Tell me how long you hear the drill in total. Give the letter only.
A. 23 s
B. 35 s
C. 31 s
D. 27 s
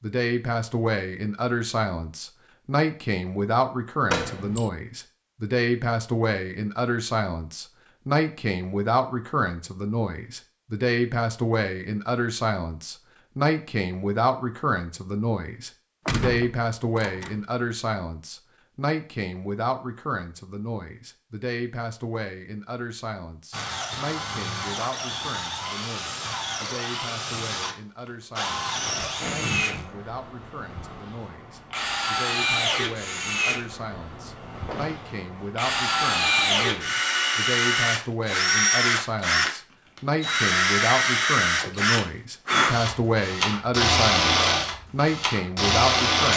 A.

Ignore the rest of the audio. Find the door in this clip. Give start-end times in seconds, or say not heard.
4.0-4.7, 16.1-17.4, 34.6-35.1.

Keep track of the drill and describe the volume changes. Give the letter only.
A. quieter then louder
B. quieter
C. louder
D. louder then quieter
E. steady
C.